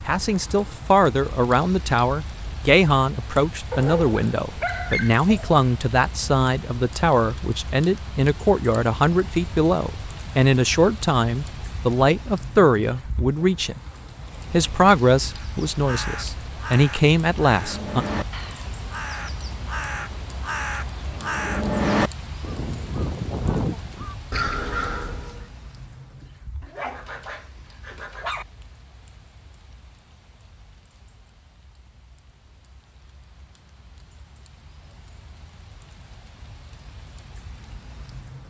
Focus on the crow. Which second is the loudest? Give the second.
22 s.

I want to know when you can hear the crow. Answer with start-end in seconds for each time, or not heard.
15.4-25.4.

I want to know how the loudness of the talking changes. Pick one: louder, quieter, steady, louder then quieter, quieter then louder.
steady.